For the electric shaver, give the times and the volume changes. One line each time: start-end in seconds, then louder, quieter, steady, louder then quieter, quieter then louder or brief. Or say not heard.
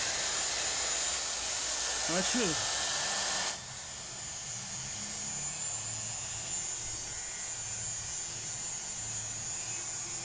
0.0-10.1 quieter then louder.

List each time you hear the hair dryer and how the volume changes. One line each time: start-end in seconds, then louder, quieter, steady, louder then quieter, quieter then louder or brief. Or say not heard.
0.0-10.1 quieter.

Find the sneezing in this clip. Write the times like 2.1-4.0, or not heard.
2.0-2.7.